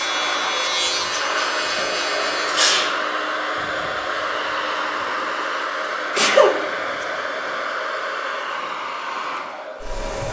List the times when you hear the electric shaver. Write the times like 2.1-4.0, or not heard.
0.0-2.5.